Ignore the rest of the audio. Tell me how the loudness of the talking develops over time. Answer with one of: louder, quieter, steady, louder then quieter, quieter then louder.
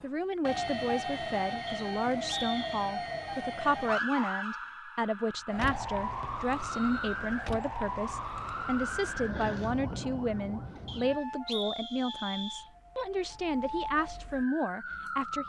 steady.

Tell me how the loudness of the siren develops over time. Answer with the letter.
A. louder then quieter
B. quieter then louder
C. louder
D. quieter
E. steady
D.